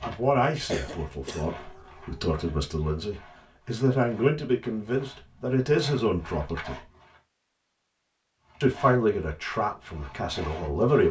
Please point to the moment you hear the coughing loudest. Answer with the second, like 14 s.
1 s.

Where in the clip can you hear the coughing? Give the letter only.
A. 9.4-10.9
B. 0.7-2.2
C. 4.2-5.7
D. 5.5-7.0
B.